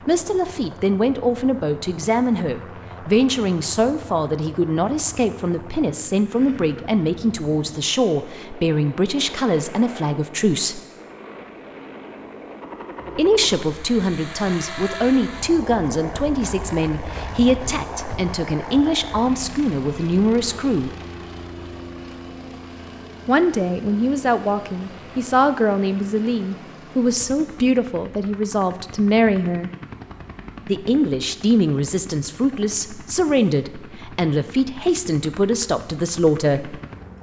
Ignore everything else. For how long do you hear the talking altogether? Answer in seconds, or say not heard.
31 s.